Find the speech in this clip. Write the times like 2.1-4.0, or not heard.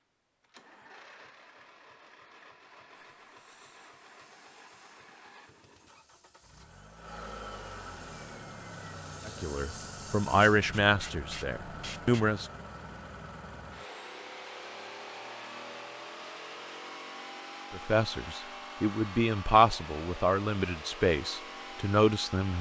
9.2-12.4, 17.7-22.5.